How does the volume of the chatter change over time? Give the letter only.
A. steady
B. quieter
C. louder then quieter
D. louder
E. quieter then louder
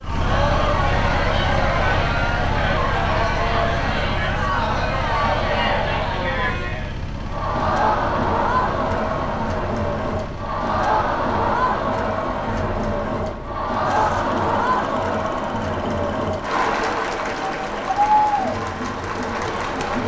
A.